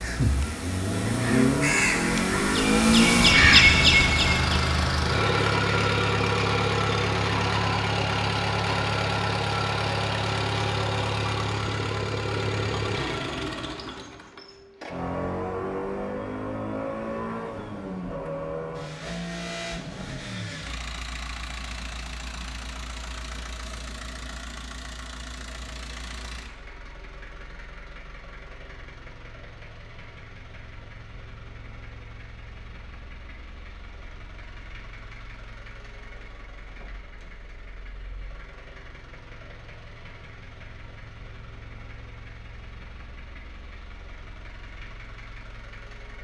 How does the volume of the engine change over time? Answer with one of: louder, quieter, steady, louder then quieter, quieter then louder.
quieter.